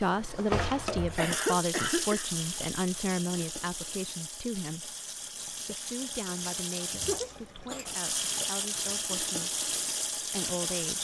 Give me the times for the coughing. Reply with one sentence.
The coughing can be heard from 0.9 to 2.2 s and from 7.0 to 7.8 s.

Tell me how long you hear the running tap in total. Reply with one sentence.
You can hear the running tap for 11 seconds altogether.